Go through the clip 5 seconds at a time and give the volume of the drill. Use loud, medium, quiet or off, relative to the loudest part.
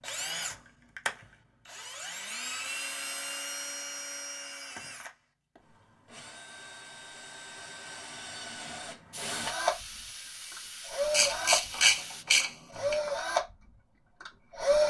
medium, medium, loud.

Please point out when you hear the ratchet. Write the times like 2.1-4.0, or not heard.
11.1-12.9.